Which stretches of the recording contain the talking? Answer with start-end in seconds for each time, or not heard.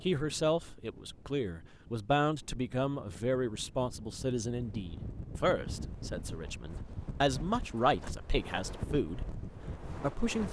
0.0-9.2, 10.0-10.4.